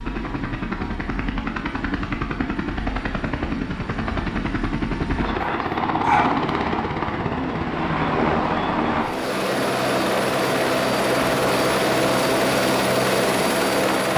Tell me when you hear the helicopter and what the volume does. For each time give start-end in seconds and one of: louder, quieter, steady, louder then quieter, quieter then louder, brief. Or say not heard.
0.0-14.1 louder.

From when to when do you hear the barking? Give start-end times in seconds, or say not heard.
5.3-6.3.